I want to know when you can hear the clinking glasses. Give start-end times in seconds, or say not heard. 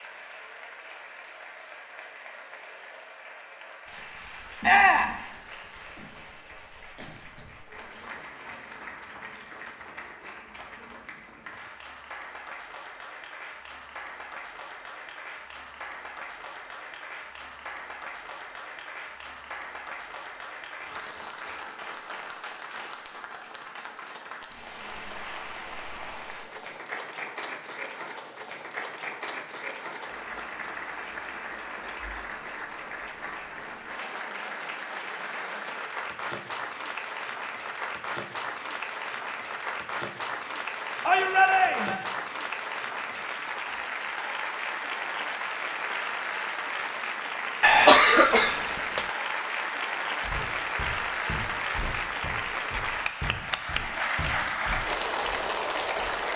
not heard.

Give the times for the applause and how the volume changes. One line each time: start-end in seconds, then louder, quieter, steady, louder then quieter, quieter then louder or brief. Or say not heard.
0.0-56.3 louder.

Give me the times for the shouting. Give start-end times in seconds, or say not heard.
4.6-5.2, 41.0-42.0.